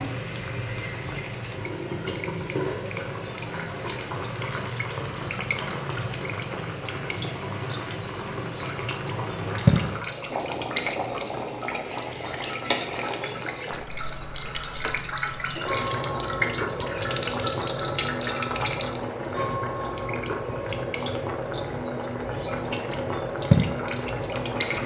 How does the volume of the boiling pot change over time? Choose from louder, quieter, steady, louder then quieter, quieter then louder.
steady.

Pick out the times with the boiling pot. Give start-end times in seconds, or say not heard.
0.0-24.8.